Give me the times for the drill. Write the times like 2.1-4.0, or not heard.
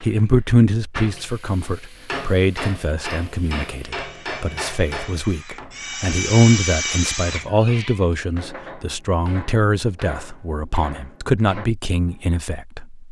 0.0-7.5.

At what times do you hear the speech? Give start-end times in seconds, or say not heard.
0.0-13.0.